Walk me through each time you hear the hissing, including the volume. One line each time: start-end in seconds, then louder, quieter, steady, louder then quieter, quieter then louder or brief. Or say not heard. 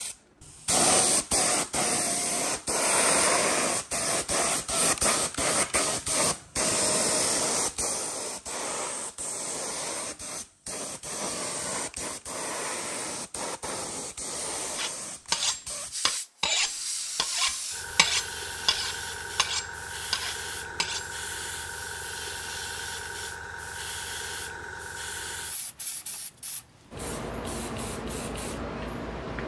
0.0-29.4 quieter.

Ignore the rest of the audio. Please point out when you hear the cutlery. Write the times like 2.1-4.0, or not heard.
14.8-21.1.